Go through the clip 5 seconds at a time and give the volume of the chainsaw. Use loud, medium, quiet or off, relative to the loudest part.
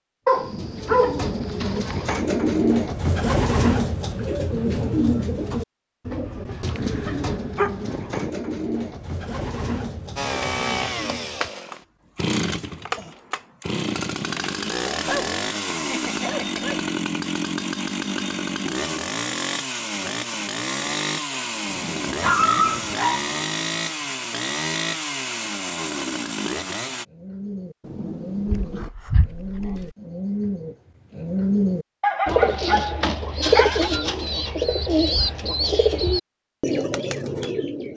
off, off, loud, loud, loud, loud, off, off.